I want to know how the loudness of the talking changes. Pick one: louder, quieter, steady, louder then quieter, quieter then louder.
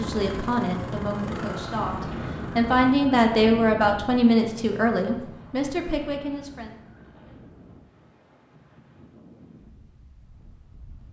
louder then quieter.